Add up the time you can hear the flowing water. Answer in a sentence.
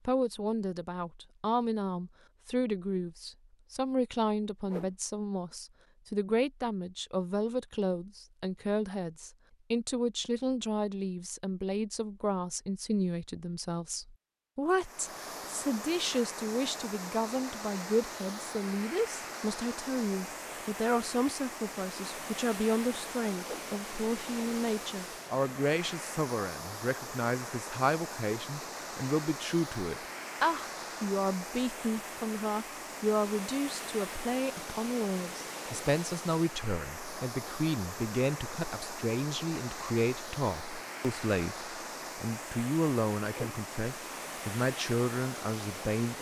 You can hear the flowing water for 31 seconds altogether.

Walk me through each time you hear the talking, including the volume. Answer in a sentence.
You can hear the talking from 0.1 to 46.1 s, at a steady volume.